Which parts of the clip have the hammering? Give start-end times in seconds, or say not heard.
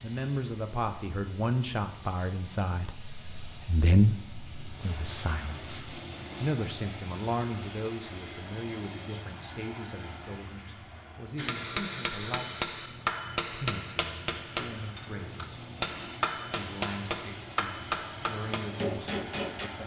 11.3-19.7.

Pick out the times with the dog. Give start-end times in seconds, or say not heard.
not heard.